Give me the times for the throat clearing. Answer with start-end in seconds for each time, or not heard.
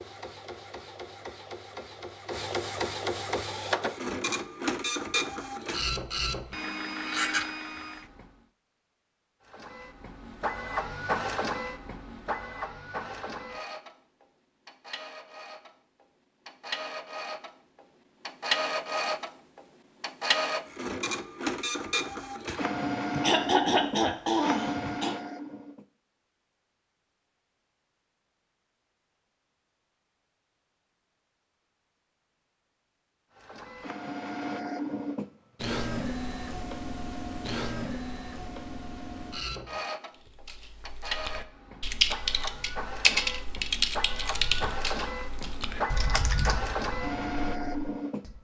22.4-25.1.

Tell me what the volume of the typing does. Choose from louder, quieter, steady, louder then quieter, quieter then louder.
quieter.